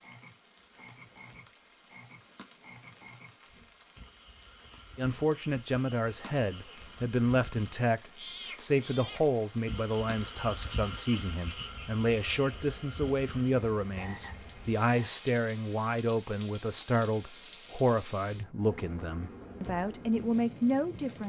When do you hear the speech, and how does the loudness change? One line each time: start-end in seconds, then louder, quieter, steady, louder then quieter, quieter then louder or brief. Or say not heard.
5.0-21.2 steady.